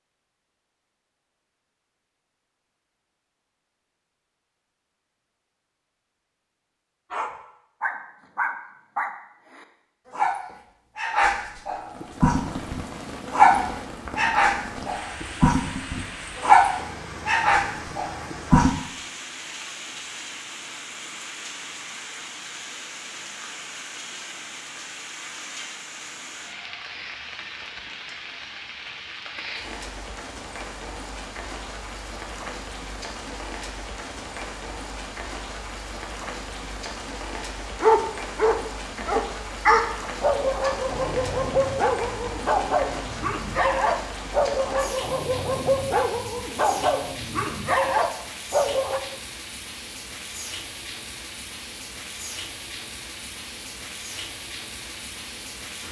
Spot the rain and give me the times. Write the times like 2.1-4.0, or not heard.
11.8-55.8.